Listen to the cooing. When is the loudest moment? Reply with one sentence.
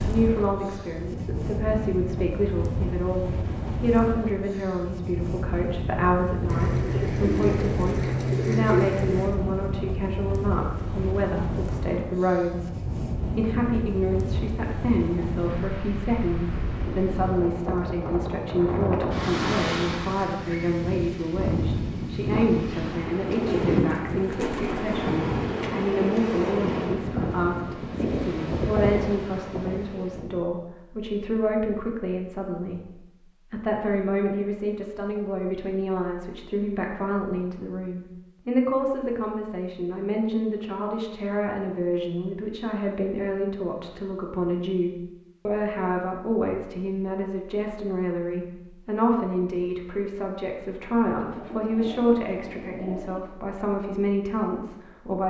The loudest moment of the cooing is at 9 seconds.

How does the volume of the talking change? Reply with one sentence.
The volume of the talking stays about the same.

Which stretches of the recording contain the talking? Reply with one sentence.
You can hear the talking from 0.0 to 55.2 s.